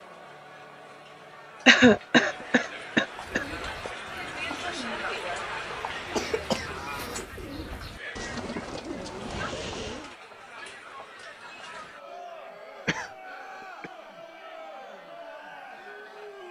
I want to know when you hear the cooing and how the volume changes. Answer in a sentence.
The cooing can be heard from 3.1 to 10.2 s, getting louder.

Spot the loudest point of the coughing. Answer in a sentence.
The volume of the coughing peaks at 2 seconds.